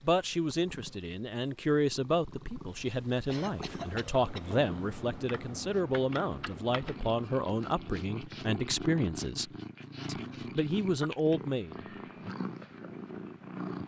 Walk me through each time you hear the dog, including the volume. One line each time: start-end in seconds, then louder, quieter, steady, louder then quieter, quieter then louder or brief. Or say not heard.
not heard.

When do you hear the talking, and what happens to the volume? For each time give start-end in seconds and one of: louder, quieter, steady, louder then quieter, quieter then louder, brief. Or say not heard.
0.0-12.3 steady.